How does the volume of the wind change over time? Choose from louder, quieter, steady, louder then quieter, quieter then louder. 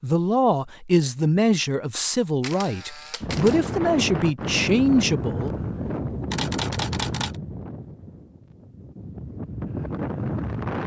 quieter then louder.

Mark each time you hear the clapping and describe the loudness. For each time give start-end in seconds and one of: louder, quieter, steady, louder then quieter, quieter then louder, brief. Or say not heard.
not heard.